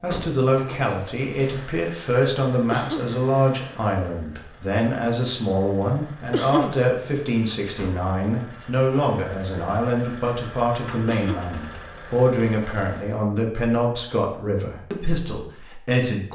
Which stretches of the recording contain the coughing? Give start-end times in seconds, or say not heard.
2.7-3.2, 6.3-6.8, 11.1-11.6.